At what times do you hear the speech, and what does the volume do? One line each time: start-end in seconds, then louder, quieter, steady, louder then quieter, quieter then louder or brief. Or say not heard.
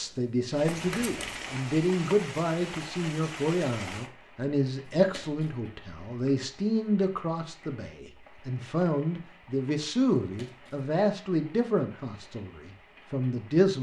0.0-13.7 steady.